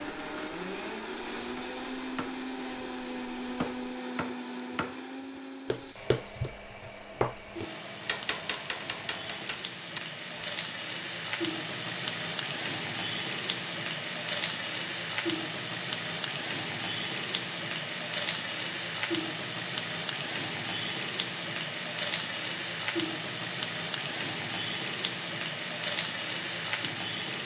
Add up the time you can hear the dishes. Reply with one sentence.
You can't hear the dishes here.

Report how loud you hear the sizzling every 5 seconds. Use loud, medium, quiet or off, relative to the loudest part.
quiet, medium, loud, loud, loud, loud.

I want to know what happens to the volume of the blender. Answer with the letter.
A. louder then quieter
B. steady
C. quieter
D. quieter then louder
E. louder
C.